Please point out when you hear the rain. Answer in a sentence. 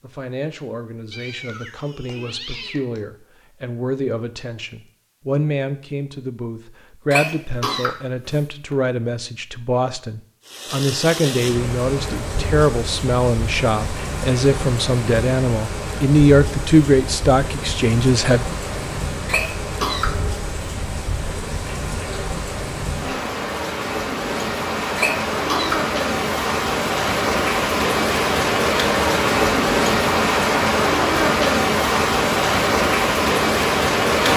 The rain can be heard from 10.4 to 34.3 s.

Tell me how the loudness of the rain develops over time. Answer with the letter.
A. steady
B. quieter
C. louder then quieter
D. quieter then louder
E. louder
E.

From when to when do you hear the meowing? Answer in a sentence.
You can hear the meowing from 1.1 to 3.0 s.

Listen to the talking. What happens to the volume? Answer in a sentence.
The volume of the talking goes up.